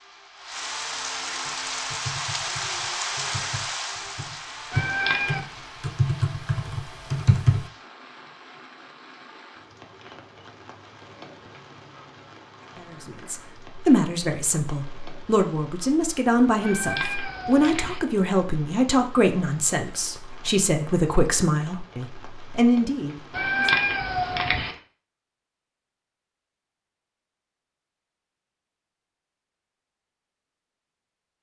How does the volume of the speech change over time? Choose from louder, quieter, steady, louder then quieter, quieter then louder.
steady.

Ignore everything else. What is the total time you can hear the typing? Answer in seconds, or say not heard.
6 s.